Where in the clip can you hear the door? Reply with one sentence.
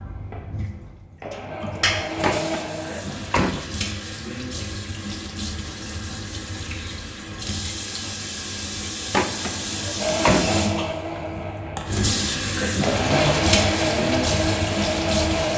The door can be heard from 2.2 to 3.6 s and from 9.1 to 10.6 s.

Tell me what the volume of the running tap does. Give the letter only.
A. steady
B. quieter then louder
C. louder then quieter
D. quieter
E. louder
E.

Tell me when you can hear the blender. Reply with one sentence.
You can hear the blender from 0.0 to 3.0 s and from 9.9 to 15.5 s.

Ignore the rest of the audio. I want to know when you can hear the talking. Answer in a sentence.
You can't hear the talking here.